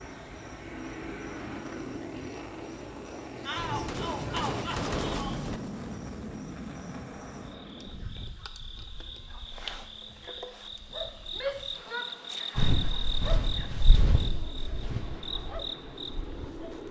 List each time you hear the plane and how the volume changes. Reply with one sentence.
The plane can be heard from 0.0 to 16.8 s, getting quieter then louder.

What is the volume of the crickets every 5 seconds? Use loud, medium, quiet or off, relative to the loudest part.
quiet, medium, loud, loud.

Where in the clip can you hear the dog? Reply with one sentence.
The dog can't be heard in this clip.